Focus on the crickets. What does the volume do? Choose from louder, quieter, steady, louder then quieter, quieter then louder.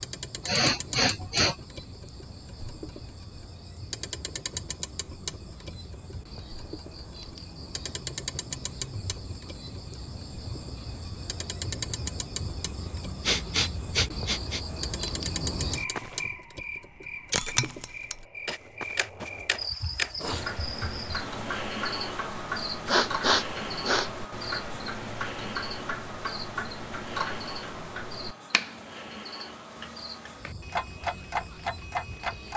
louder then quieter.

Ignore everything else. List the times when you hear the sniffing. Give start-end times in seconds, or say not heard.
0.5-1.6, 13.2-14.6, 22.9-24.1.